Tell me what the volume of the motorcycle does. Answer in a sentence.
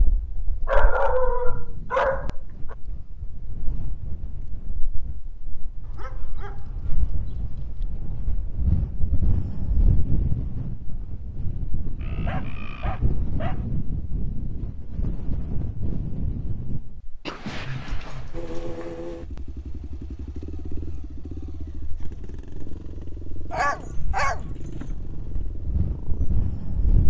The volume of the motorcycle goes down.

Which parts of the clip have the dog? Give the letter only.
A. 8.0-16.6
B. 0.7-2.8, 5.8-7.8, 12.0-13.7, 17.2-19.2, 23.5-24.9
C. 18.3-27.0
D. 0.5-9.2
B.